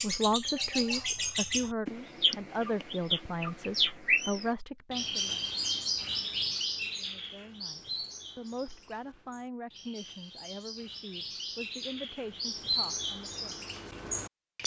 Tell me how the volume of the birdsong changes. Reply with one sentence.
The volume of the birdsong goes down, then up.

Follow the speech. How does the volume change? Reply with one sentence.
The loudness of the speech goes down.